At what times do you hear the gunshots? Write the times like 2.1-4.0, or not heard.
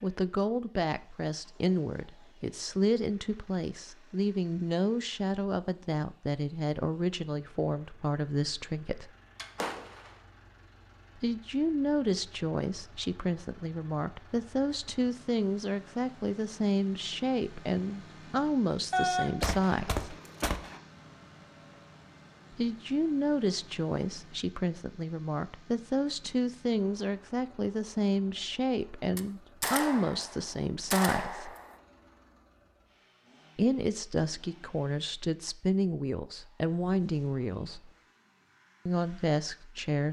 9.3-10.2, 18.9-20.8, 29.1-31.8.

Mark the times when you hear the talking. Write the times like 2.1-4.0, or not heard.
0.0-9.1, 11.2-20.1, 22.5-31.6, 33.5-37.9, 38.9-40.0.